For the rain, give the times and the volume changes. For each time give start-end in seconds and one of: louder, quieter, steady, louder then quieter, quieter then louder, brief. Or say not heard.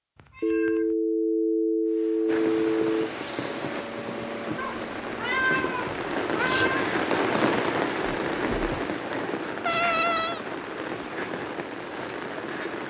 2.2-12.8 louder then quieter.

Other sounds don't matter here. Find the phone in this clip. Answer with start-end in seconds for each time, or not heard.
0.4-3.1, 8.1-8.9.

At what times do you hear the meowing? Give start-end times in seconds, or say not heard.
0.1-0.9, 4.5-6.9, 9.7-10.4.